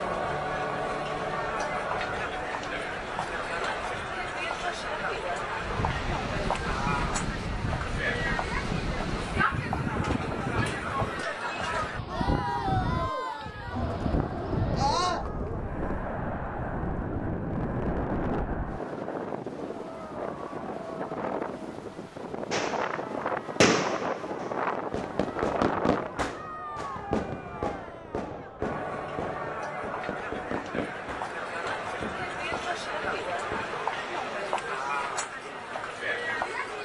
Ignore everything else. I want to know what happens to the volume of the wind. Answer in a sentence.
The loudness of the wind goes up.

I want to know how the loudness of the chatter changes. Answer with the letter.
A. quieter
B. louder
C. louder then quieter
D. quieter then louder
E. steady
D.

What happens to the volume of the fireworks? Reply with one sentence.
The volume of the fireworks goes down.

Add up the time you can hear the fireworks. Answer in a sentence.
You can hear the fireworks for 11 seconds altogether.